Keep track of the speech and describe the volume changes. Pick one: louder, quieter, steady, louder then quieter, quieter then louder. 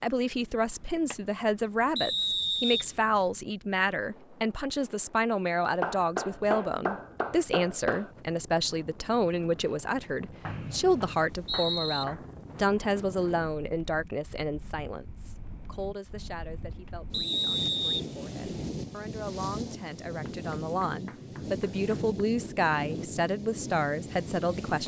quieter then louder.